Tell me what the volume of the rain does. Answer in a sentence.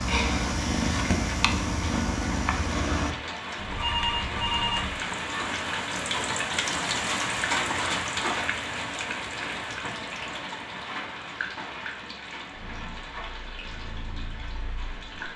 The loudness of the rain goes up, then down.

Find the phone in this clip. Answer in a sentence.
You can hear the phone from 3.5 to 5.0 s.